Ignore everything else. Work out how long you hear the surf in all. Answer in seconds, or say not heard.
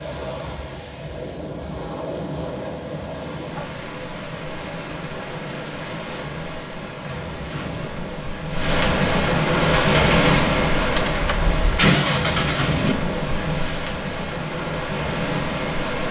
16 s.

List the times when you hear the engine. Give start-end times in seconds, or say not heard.
9.6-13.0.